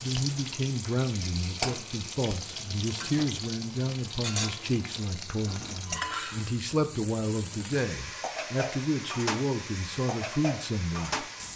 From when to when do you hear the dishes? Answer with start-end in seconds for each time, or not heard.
not heard.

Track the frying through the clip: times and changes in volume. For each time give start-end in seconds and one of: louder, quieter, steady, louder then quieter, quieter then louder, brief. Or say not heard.
0.0-11.5 steady.